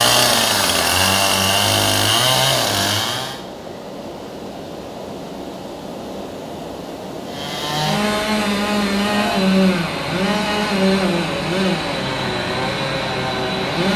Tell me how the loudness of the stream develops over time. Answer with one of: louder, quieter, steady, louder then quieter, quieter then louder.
louder.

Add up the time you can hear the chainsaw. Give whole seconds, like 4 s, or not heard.
10 s.